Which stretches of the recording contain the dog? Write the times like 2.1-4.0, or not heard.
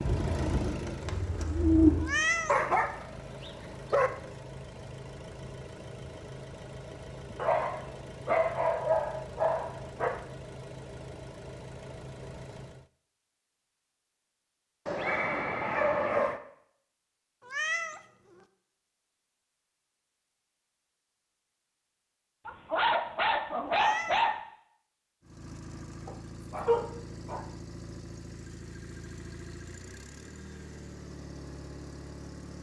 2.5-4.1, 7.3-10.2, 14.8-16.4, 22.4-24.4, 26.1-27.4.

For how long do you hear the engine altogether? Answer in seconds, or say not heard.
20 s.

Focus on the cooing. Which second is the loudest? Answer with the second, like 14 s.
2 s.